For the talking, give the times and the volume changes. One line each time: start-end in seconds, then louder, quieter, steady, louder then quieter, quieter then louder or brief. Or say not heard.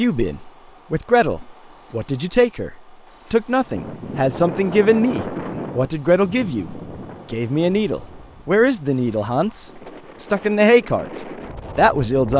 0.0-12.3 steady.